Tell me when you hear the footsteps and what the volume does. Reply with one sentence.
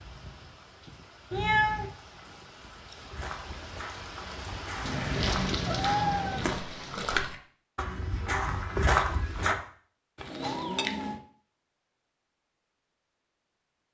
You can hear the footsteps from 3.1 to 9.6 s, getting louder.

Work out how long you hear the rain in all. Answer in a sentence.
The rain can be heard for 7 seconds in total.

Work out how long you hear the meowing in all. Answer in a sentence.
You can hear the meowing for 3 seconds altogether.